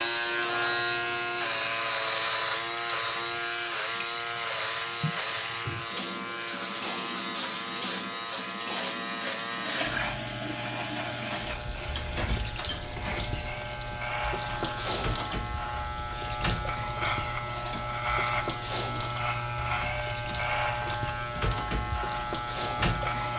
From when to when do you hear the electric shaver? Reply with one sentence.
You can hear the electric shaver from 0.0 to 23.3 s.